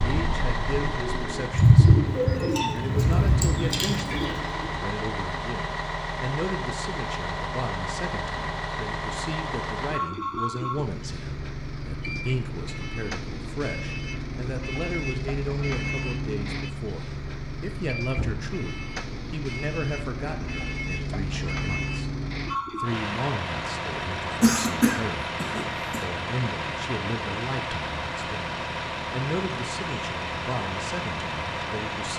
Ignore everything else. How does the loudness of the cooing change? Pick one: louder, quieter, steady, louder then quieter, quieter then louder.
louder then quieter.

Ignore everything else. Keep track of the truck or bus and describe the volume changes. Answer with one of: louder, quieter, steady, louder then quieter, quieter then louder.
steady.